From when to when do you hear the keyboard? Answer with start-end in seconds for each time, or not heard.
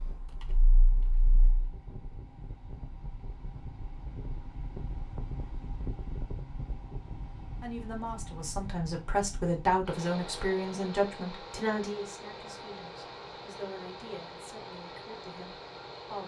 0.0-1.6.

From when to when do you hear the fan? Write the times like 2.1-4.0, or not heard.
0.0-16.2.